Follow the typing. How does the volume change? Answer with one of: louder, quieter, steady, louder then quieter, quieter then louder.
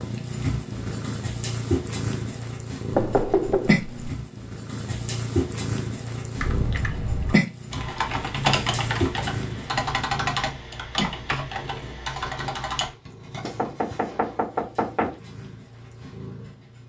louder then quieter.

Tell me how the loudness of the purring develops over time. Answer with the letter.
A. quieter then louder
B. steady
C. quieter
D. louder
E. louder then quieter
C.